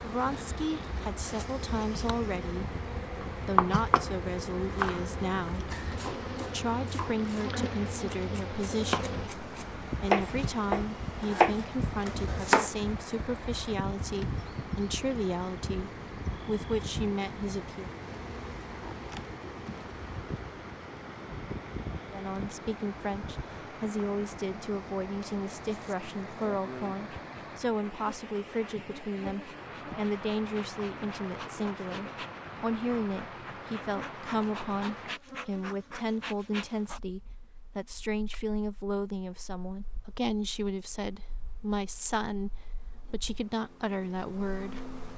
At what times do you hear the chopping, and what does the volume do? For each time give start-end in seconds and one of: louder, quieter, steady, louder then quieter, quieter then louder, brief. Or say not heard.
3.2-4.1 brief
4.7-12.7 louder.